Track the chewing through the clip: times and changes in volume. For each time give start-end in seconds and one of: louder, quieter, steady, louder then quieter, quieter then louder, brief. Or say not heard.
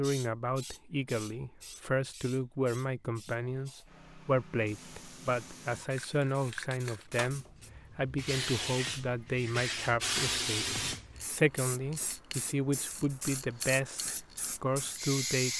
not heard.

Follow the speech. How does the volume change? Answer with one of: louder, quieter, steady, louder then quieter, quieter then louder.
steady.